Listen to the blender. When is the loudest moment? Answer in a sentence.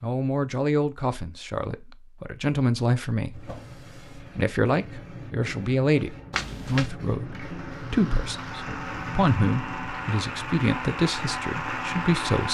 The volume of the blender peaks at 12 seconds.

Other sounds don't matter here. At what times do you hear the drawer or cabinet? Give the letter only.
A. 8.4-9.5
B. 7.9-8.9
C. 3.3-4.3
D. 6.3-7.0
C.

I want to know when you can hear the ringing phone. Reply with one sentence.
The ringing phone can be heard from 6.3 to 7.0 s.